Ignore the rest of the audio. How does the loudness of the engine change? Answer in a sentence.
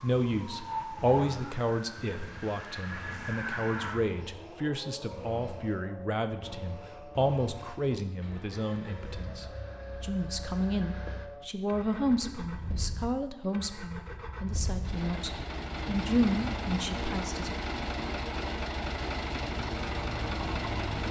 The volume of the engine goes up.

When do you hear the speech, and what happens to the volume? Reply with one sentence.
The speech can be heard from 0.0 to 17.5 s, at a steady volume.